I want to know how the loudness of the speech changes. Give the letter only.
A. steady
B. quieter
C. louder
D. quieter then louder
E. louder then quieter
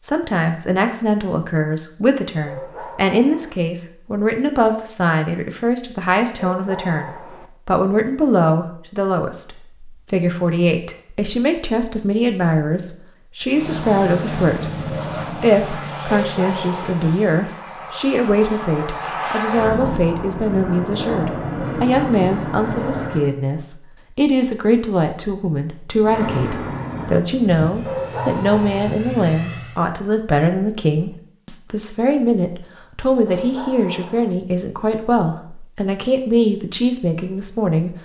A.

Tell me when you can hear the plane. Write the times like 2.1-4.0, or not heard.
13.5-23.3, 26.0-29.8.